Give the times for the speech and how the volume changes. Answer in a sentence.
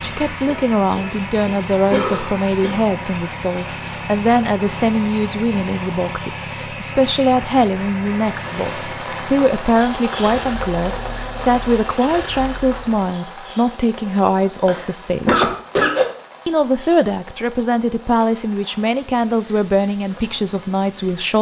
You can hear the speech from 0.0 to 15.5 s, at a steady volume; and from 16.4 to 21.3 s, at a steady volume.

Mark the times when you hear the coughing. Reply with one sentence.
You can hear the coughing from 0.5 to 2.9 s and from 14.1 to 16.1 s.